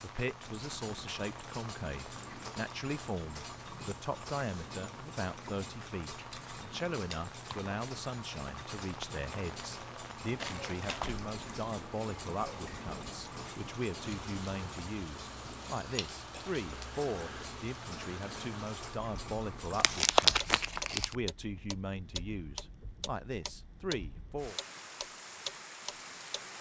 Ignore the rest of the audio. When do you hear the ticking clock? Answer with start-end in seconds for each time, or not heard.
0.0-26.4.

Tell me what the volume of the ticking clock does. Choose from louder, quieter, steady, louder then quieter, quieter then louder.
louder.